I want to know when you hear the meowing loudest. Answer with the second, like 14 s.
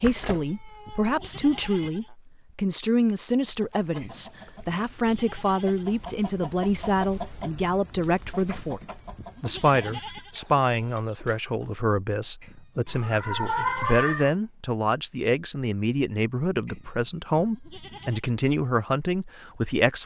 14 s.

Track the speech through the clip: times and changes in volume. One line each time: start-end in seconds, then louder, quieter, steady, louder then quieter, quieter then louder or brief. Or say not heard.
0.0-20.0 steady.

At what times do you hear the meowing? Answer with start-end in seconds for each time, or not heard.
0.0-1.9, 12.8-14.3.